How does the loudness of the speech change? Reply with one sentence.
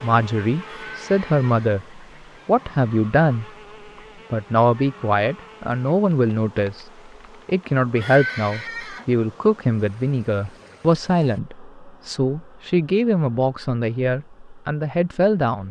The loudness of the speech stays about the same.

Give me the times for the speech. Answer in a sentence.
The speech can be heard from 0.0 to 3.5 s and from 4.3 to 15.6 s.